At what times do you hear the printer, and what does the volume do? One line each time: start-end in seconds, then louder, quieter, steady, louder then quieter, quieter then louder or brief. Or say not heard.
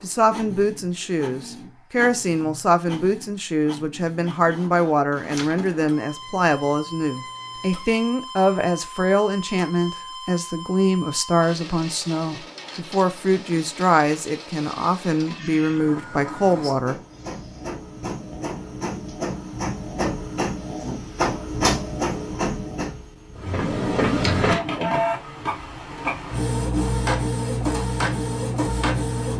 0.0-29.3 louder.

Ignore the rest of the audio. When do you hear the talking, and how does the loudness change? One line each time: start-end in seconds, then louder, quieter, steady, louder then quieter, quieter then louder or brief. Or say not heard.
0.0-16.9 steady.